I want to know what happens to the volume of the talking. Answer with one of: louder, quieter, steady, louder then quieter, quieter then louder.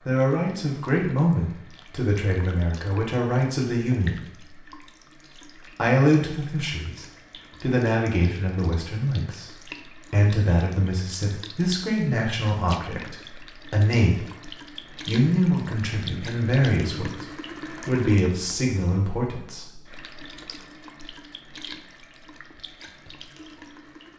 steady.